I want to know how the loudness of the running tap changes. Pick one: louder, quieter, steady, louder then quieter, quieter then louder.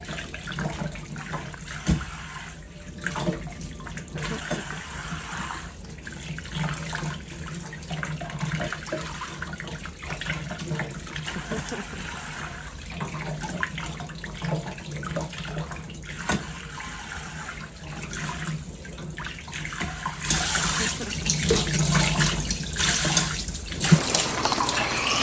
louder.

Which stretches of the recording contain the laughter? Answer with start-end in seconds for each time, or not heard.
4.1-5.0, 11.3-12.2, 20.6-21.4.